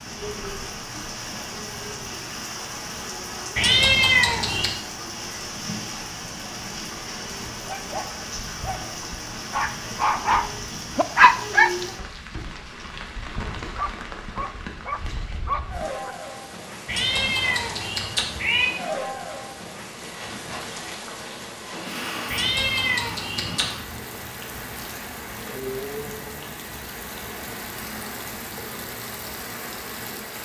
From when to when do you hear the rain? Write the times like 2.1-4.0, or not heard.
0.0-30.4.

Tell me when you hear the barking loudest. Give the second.
11 s.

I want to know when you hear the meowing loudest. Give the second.
4 s.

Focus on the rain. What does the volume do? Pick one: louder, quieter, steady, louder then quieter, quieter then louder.
steady.